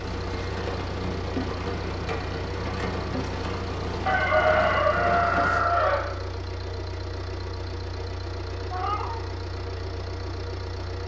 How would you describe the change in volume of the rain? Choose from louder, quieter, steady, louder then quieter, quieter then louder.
steady.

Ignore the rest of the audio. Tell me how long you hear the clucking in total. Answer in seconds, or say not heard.
2 s.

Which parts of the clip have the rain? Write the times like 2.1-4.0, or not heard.
0.0-5.6.